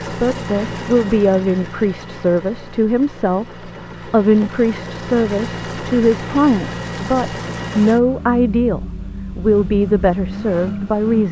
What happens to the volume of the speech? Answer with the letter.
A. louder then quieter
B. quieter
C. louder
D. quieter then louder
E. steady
E.